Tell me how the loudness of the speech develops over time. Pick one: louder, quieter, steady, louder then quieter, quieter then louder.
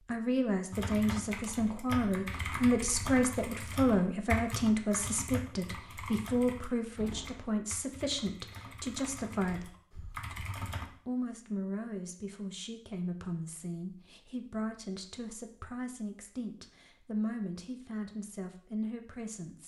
quieter.